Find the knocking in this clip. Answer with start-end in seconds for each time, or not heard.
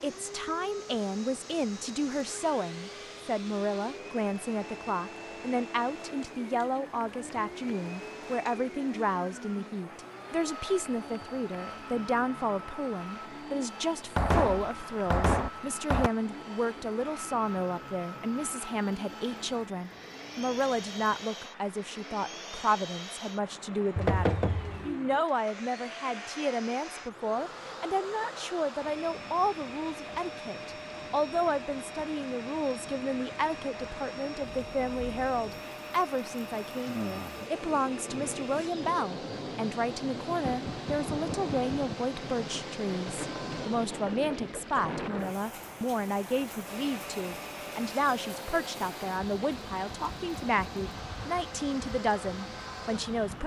14.2-16.1, 23.9-24.9, 40.4-42.0.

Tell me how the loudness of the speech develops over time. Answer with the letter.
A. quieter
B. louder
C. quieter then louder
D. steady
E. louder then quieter
D.